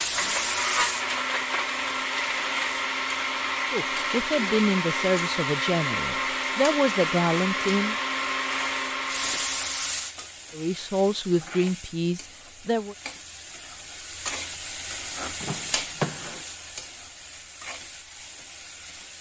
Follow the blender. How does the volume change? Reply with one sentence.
The loudness of the blender stays about the same.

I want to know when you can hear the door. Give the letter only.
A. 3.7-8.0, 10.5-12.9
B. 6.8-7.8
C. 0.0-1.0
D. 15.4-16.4
D.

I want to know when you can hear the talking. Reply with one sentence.
You can hear the talking from 3.7 to 8.0 s and from 10.5 to 12.9 s.